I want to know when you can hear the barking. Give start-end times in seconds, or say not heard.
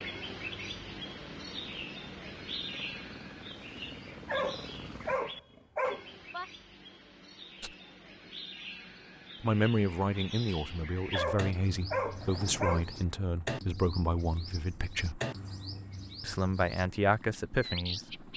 4.2-6.5, 11.1-12.8.